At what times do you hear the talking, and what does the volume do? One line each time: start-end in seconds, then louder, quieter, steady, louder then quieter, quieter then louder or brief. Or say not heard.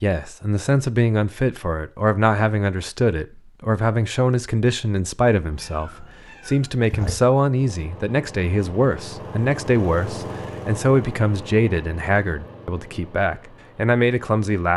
0.0-14.7 steady.